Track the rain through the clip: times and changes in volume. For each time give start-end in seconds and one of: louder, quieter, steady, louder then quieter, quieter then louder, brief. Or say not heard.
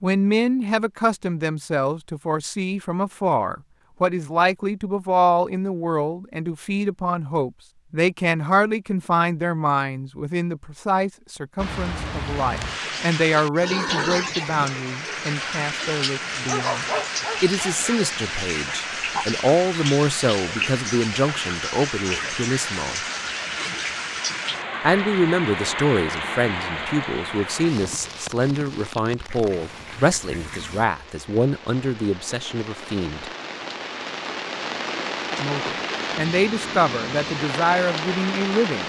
11.6-38.8 quieter then louder.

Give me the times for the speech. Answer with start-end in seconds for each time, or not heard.
0.0-23.0, 24.8-33.3, 35.4-38.8.